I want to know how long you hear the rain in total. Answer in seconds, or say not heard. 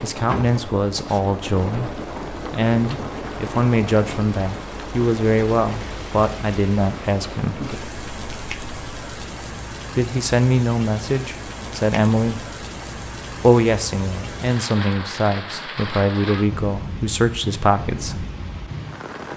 19 s.